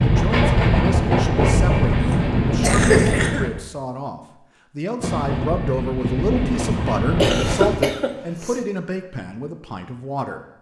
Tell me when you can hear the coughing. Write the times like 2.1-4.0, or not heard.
2.0-3.5, 7.2-8.6.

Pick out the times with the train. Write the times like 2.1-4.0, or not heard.
0.0-3.5, 5.0-7.8.